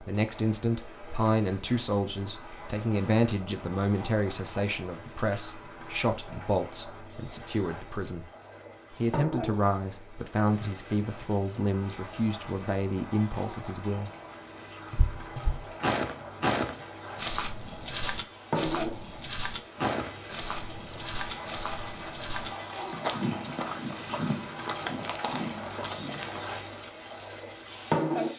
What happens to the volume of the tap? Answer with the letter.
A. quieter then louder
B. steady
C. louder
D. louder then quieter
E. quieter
C.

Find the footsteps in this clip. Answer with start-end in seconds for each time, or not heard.
14.9-26.4.